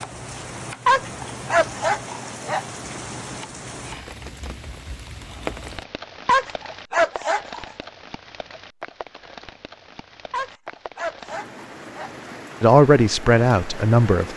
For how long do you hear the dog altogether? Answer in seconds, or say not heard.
5 s.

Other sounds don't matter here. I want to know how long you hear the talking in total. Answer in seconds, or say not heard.
2 s.